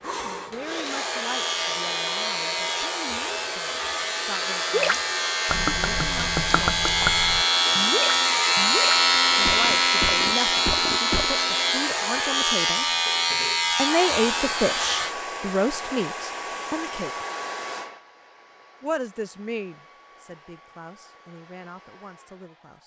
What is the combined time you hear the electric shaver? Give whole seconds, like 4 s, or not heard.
15 s.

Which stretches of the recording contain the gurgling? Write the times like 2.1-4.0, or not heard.
4.7-11.3.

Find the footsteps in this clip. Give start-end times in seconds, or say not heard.
not heard.